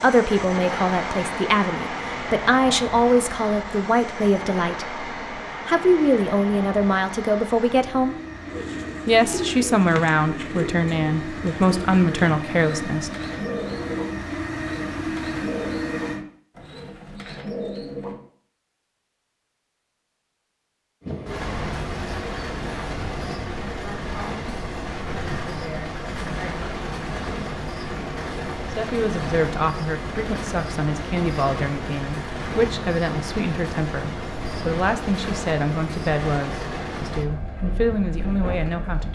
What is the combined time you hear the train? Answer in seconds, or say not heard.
34 s.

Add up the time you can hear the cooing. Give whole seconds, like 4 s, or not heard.
10 s.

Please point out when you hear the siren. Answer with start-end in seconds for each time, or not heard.
not heard.